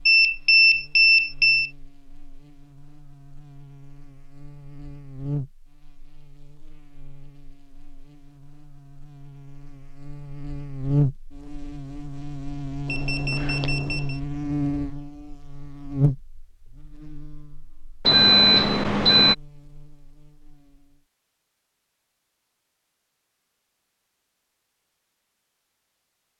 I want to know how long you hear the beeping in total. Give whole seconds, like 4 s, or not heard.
4 s.